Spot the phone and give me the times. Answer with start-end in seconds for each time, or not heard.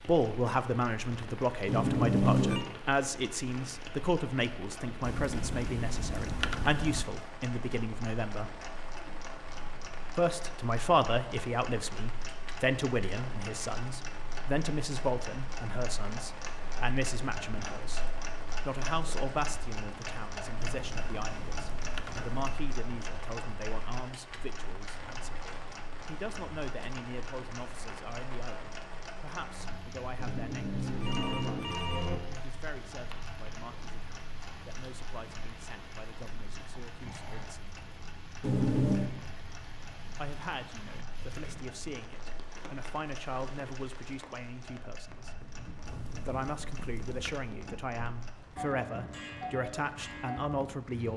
1.6-2.6, 30.1-32.1, 38.4-39.1.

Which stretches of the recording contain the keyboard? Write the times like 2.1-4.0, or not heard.
5.0-7.0, 20.6-22.6, 45.9-47.5.